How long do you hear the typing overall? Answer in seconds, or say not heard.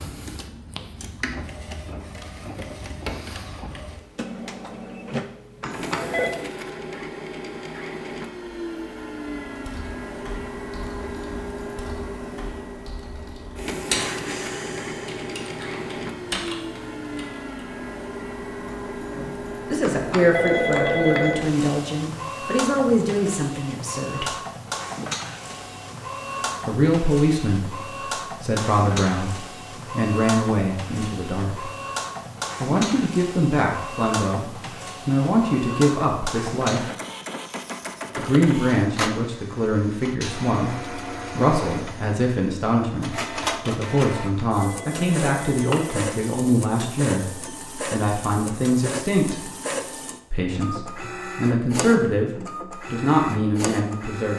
8 s.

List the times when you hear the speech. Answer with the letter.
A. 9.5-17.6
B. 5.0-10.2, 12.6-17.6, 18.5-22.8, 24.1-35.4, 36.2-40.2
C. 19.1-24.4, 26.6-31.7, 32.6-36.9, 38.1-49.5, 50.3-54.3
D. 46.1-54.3
C.